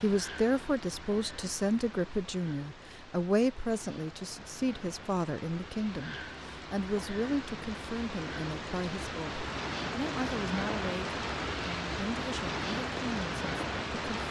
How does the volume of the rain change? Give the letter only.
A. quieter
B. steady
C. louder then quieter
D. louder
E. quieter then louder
D.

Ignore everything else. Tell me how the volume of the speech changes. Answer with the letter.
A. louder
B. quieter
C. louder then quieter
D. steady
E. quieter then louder
B.